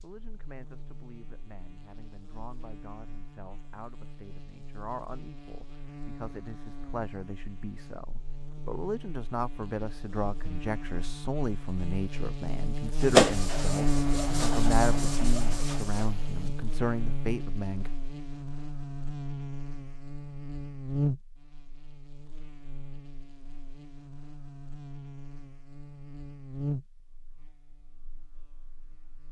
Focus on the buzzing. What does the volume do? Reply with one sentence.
The volume of the buzzing goes up, then down.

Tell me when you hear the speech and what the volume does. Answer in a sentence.
You can hear the speech from 0.0 to 17.9 s, getting louder.